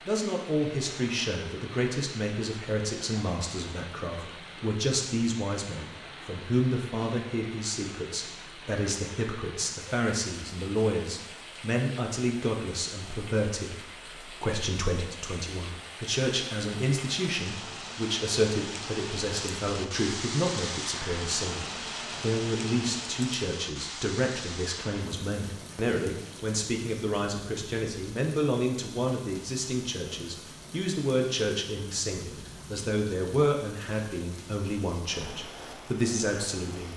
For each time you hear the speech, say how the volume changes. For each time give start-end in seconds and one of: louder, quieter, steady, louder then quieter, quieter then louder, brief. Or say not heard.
0.1-36.9 steady.